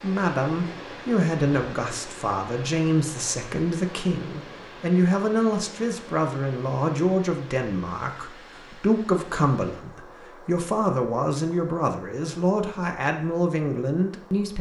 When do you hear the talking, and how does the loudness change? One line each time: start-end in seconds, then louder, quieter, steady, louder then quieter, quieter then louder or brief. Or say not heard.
0.0-14.5 steady.